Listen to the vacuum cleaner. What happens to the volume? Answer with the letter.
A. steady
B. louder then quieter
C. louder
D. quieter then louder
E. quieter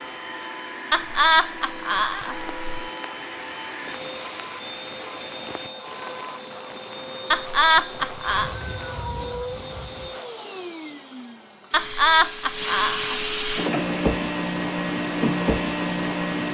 C.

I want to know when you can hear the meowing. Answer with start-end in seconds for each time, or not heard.
8.2-10.2.